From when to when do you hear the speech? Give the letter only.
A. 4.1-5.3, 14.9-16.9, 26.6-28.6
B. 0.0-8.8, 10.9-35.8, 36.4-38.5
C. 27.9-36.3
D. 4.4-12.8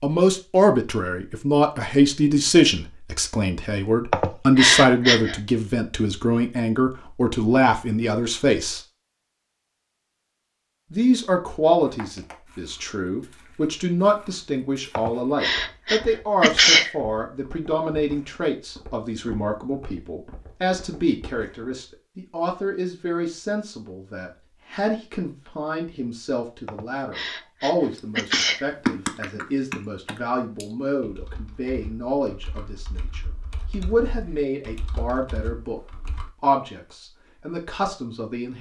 B.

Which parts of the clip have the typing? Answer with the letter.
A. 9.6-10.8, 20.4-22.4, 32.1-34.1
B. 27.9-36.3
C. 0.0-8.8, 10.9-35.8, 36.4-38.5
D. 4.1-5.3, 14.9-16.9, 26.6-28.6
B.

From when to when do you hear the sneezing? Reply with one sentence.
You can hear the sneezing from 4.1 to 5.3 s, from 14.9 to 16.9 s and from 26.6 to 28.6 s.